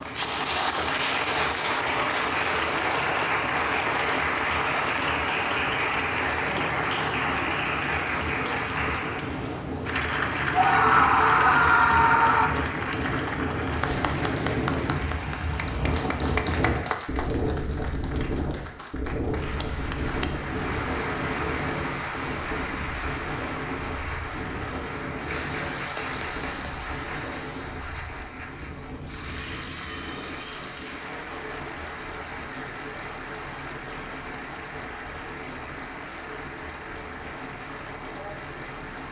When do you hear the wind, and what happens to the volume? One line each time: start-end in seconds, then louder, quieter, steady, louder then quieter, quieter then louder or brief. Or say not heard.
0.0-39.0 louder then quieter.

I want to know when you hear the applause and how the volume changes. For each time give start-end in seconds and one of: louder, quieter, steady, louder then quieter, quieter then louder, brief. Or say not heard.
0.0-39.0 quieter.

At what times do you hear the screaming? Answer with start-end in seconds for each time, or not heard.
10.5-12.5.